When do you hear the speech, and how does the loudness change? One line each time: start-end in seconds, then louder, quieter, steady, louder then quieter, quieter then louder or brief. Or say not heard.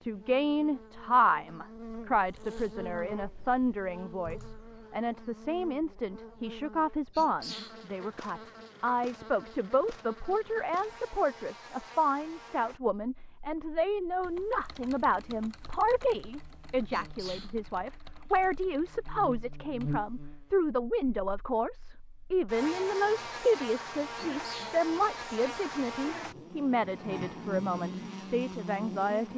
0.0-29.3 steady.